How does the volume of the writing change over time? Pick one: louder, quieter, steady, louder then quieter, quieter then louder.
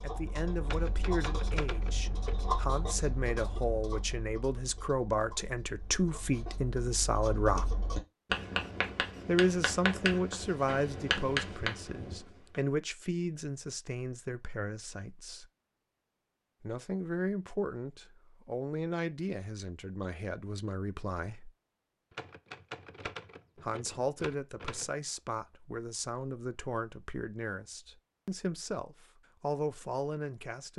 quieter then louder.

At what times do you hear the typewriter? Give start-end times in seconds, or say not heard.
0.7-2.5, 22.1-24.9.